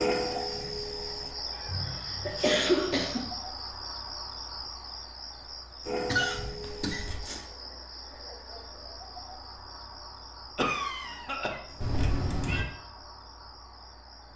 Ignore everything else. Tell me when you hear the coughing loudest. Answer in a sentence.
The loudest moment of the coughing is at 3 seconds.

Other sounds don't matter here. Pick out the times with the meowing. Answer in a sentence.
You can hear the meowing from 1.5 to 2.5 s, from 6.6 to 7.2 s and from 11.8 to 12.7 s.